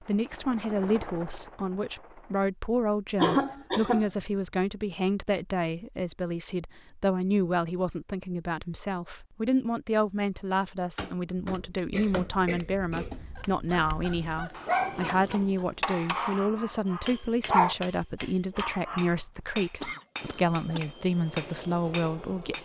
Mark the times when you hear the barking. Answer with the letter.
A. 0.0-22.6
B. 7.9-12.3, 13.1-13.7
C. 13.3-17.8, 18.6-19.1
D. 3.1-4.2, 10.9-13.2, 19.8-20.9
C.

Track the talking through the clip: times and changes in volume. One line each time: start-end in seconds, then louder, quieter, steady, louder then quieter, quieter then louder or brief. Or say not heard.
0.0-22.6 steady.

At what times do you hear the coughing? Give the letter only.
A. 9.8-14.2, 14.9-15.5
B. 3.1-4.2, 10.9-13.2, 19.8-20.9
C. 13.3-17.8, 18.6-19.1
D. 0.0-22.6
B.